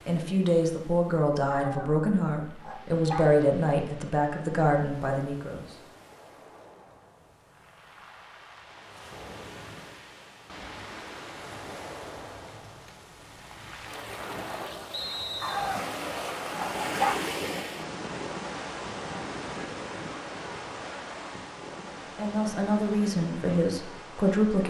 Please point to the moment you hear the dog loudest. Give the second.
17 s.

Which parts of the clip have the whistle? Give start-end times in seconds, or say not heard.
14.9-15.8.